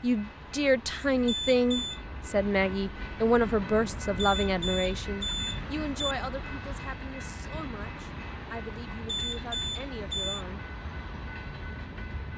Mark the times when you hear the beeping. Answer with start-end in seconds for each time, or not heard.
1.2-2.0, 4.2-6.2, 9.1-10.4.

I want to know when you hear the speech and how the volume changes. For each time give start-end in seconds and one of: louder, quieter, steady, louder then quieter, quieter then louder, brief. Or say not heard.
0.0-10.7 quieter.